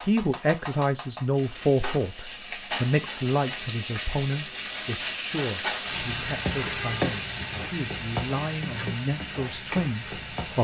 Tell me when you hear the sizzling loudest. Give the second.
7 s.